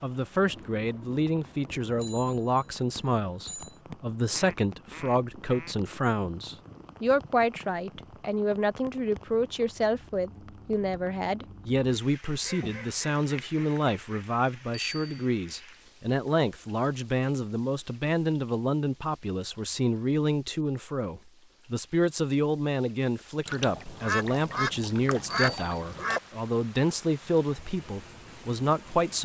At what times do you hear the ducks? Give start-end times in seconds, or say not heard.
4.3-5.8, 12.2-14.2, 23.4-26.2.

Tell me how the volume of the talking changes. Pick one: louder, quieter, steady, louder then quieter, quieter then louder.
steady.